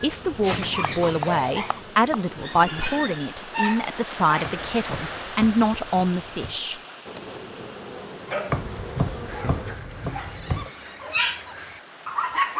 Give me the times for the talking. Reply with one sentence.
The talking can be heard from 0.0 to 6.8 s.